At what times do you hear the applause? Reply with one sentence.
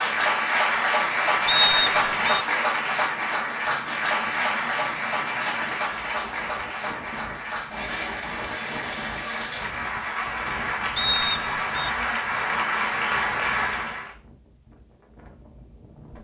The applause can be heard from 0.0 to 14.1 s.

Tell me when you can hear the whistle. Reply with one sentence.
The whistle can be heard from 1.4 to 2.5 s and from 10.9 to 11.9 s.